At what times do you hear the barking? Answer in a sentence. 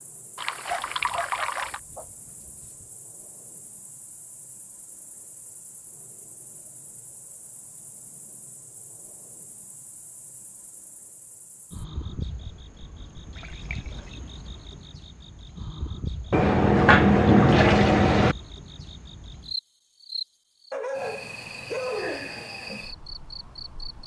You can hear the barking from 0.7 to 2.9 s and from 20.7 to 22.4 s.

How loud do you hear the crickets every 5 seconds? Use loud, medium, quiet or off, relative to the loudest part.
quiet, quiet, medium, loud, loud.